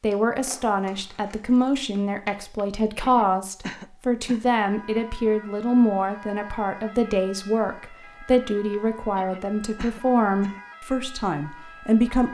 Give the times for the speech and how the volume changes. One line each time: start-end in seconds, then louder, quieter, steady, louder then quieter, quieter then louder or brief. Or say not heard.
0.0-12.2 steady.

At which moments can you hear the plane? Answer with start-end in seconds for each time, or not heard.
not heard.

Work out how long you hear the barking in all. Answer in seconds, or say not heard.
not heard.